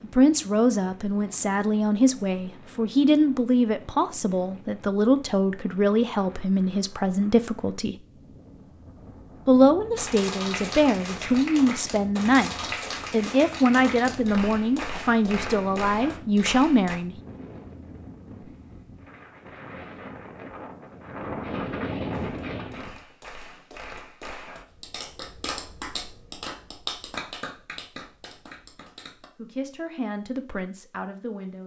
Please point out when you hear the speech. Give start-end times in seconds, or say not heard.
0.0-8.0, 9.4-17.1, 29.4-31.6.